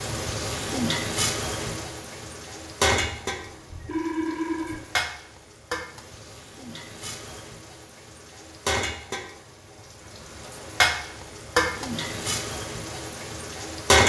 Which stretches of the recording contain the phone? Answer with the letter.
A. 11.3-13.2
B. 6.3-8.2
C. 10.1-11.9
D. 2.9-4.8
D.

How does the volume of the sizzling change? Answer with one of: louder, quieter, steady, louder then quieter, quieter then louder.
quieter then louder.